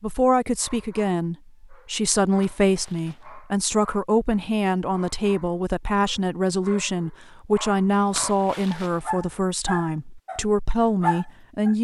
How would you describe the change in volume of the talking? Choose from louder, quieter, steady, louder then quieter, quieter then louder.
steady.